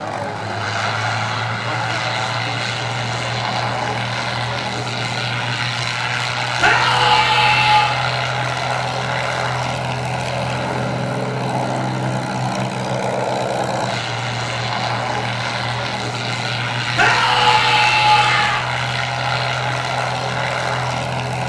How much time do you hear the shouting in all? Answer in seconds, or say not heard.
3 s.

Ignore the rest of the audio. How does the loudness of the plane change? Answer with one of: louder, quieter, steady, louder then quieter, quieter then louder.
steady.